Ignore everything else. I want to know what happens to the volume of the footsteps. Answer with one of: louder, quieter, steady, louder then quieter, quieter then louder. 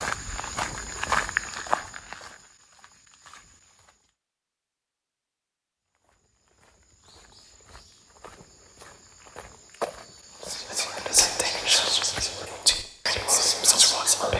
quieter then louder.